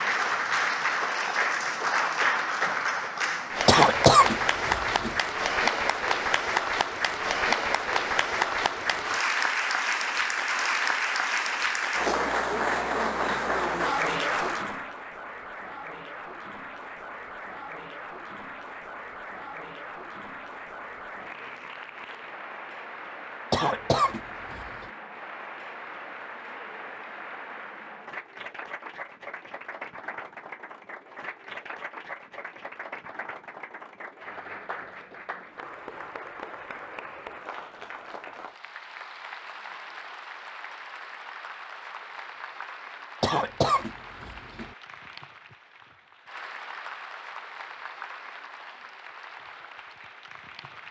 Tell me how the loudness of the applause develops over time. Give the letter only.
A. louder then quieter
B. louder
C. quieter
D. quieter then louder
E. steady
C.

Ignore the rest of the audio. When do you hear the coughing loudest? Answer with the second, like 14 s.
4 s.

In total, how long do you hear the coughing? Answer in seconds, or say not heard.
4 s.